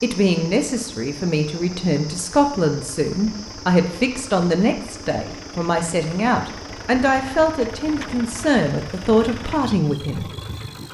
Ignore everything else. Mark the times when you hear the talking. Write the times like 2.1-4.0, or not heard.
0.0-10.3.